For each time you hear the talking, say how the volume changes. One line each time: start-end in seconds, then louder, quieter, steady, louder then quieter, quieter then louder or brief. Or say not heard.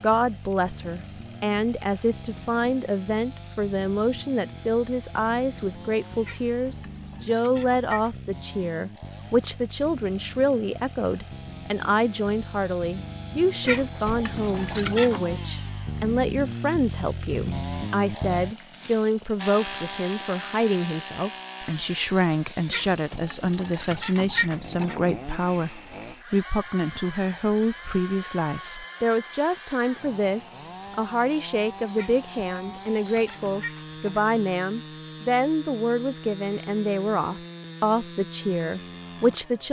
0.0-39.6 steady.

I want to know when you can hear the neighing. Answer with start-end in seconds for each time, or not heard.
not heard.